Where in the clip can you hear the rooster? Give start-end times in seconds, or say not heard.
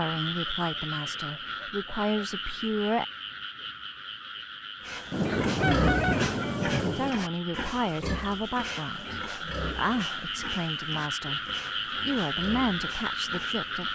5.4-6.8.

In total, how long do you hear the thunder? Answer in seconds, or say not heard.
2 s.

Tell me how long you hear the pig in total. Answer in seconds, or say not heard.
9 s.